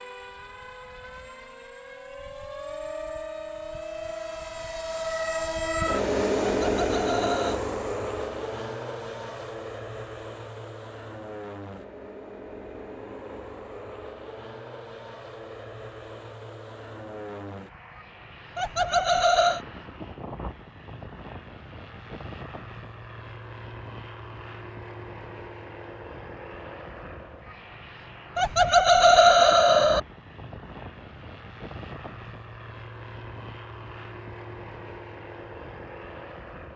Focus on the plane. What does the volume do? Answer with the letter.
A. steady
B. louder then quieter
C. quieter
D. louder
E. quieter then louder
C.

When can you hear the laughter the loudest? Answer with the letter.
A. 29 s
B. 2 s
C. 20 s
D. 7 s
A.